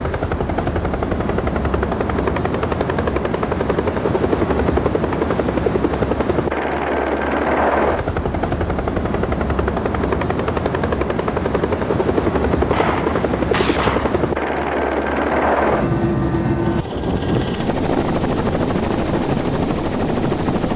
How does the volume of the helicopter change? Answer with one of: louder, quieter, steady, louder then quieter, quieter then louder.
steady.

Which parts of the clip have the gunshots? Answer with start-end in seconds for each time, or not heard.
12.7-14.2.